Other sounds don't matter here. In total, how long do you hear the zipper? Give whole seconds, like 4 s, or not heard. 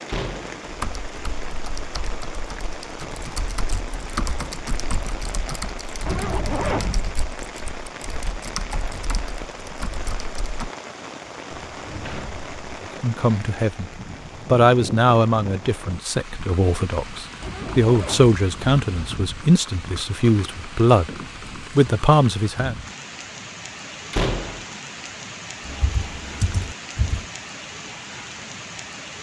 3 s.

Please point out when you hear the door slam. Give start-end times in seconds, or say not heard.
0.1-0.6, 11.5-12.8, 24.1-24.6.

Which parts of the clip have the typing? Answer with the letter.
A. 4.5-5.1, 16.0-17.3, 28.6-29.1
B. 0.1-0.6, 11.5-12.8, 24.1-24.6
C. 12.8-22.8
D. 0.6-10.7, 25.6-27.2
D.